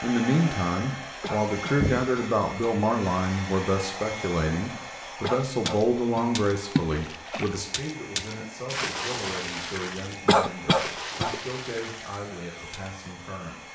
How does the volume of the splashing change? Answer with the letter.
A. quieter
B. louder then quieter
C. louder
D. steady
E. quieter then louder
A.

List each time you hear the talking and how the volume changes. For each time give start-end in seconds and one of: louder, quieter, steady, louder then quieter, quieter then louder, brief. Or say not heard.
0.0-13.6 quieter.